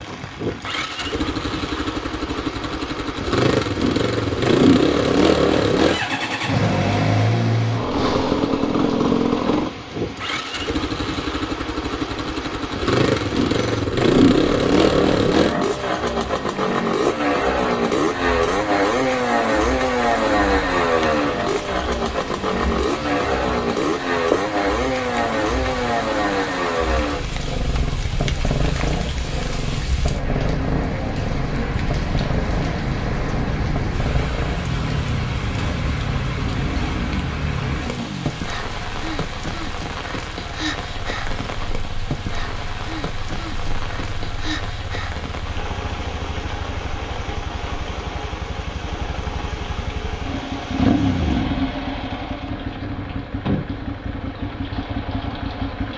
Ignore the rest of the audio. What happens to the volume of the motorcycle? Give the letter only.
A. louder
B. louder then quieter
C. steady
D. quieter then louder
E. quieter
E.